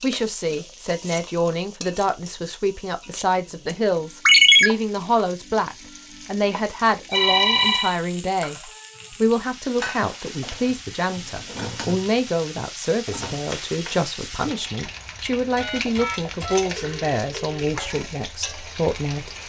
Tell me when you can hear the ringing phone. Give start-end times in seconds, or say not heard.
4.2-4.7, 7.1-8.0, 15.6-17.7.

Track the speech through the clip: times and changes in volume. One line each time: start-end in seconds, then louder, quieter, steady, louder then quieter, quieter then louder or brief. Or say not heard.
0.0-19.3 steady.